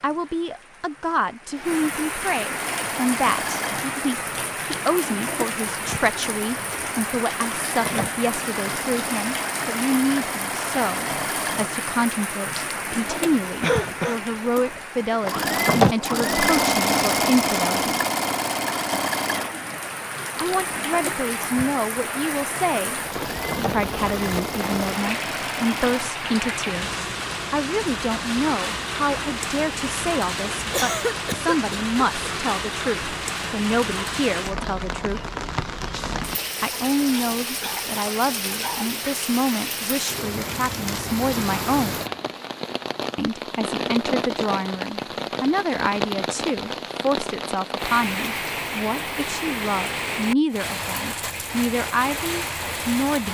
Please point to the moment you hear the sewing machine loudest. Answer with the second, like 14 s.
16 s.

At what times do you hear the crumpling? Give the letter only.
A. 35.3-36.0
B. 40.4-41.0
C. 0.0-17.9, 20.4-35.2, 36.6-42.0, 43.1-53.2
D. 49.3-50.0
B.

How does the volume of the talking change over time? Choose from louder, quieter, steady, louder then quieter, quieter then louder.
steady.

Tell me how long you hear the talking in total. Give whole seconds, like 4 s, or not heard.
48 s.